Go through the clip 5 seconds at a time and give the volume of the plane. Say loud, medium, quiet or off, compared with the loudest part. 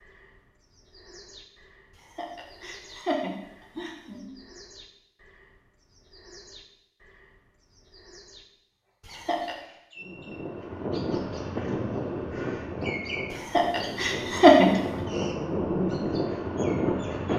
off, off, medium, loud.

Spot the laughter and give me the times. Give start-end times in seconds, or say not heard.
2.1-4.2, 9.1-9.6, 13.6-14.7.